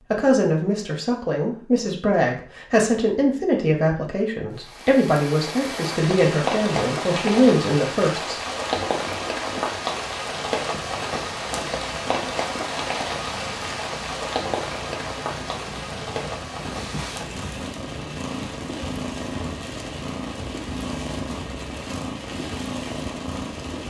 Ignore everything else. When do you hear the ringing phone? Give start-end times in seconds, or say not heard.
not heard.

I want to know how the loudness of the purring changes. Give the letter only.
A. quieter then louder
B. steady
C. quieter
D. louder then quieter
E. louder
E.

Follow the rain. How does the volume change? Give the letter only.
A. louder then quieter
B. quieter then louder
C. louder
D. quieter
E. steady
D.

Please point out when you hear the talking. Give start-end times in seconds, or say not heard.
0.1-8.3.